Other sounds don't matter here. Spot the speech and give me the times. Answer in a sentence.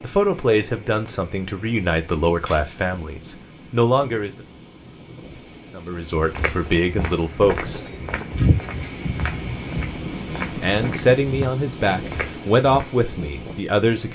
The speech can be heard from 0.0 to 4.3 s, from 5.8 to 8.3 s and from 10.2 to 14.1 s.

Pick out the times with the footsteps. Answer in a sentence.
The footsteps can be heard from 6.3 to 12.8 s.